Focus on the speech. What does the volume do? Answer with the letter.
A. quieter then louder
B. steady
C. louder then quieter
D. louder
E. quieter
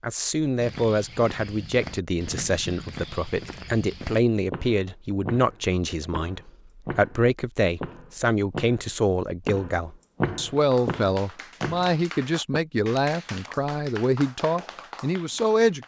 B.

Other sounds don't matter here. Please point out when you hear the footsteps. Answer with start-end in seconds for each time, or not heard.
0.6-12.6.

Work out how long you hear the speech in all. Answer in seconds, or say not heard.
16 s.